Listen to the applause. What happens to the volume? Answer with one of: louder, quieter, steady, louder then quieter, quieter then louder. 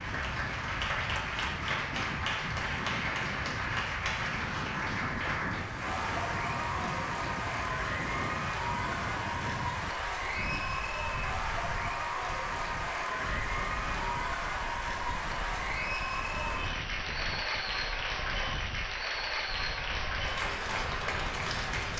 steady.